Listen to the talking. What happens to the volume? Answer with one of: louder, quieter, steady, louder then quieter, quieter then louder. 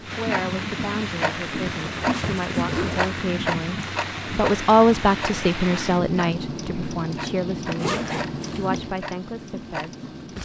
louder then quieter.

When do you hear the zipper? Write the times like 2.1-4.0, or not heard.
1.8-3.1, 7.8-8.8.